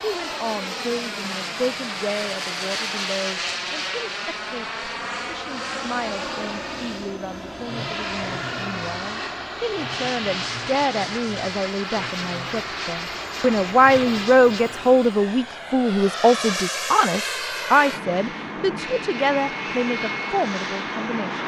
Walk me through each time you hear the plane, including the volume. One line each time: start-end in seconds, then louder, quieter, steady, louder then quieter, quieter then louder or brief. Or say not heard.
0.0-21.4 steady.